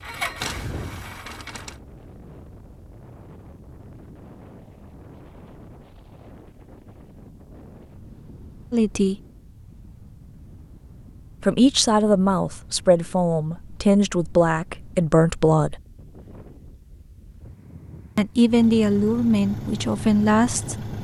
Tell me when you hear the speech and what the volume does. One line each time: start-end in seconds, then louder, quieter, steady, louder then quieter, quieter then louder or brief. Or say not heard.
8.7-9.2 brief
11.4-15.8 steady
18.1-20.9 brief.